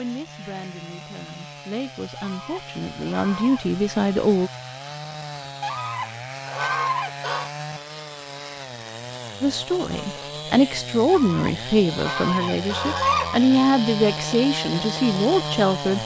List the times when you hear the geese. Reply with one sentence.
You can hear the geese from 2.1 to 3.8 s, from 5.6 to 7.5 s and from 11.1 to 13.4 s.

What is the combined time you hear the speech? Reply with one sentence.
The speech can be heard for 11 seconds in total.